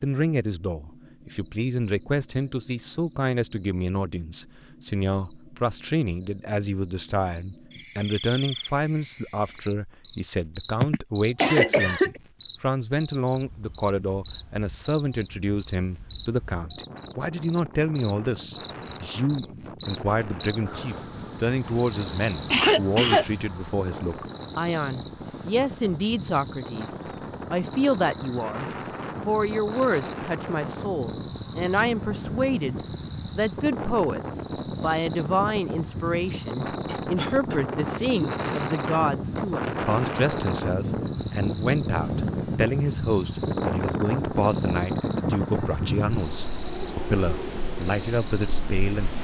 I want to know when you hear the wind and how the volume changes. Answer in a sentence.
You can hear the wind from 13.3 to 49.1 s, getting louder.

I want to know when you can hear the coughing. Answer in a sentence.
The coughing can be heard from 10.8 to 12.1 s, from 21.6 to 23.2 s and from 36.9 to 38.3 s.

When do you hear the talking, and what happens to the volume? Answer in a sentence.
The talking can be heard from 0.0 to 49.1 s, at a steady volume.